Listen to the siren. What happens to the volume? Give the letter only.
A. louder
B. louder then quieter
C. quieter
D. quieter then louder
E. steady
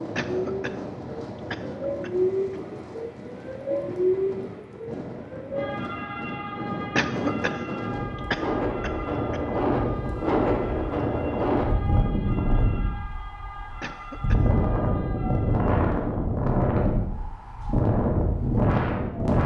C.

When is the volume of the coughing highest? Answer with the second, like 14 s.
7 s.